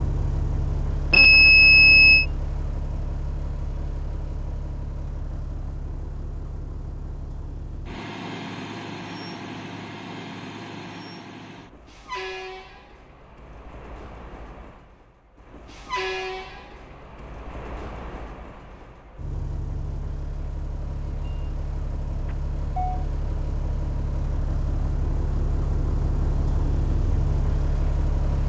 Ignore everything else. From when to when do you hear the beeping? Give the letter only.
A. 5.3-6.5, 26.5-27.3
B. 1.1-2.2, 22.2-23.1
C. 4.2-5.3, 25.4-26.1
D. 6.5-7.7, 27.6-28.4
B.